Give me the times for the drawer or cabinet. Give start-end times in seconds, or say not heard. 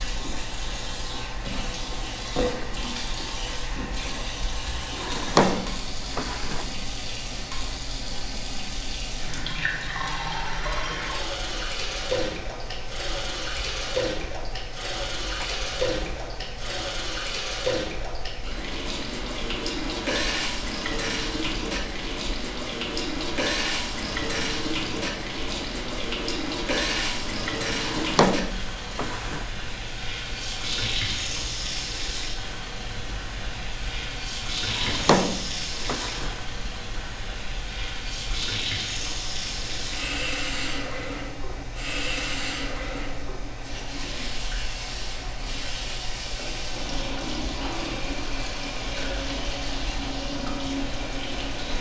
5.0-6.7, 27.8-29.4, 34.7-36.4.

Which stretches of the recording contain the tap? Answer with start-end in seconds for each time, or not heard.
0.0-51.7.